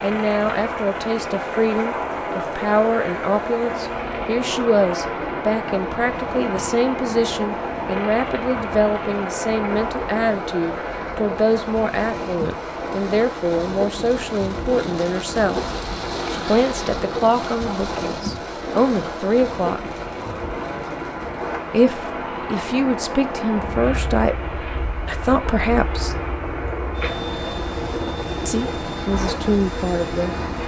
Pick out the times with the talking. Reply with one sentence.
The talking can be heard from 0.0 to 15.6 s, from 16.3 to 19.9 s, from 21.7 to 26.1 s and from 28.4 to 30.4 s.